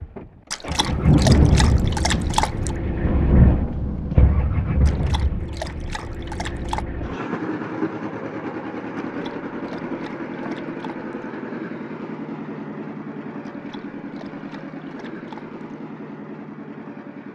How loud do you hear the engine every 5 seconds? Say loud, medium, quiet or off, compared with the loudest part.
loud, loud, loud, medium.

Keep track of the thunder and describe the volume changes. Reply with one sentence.
The volume of the thunder goes down, then up.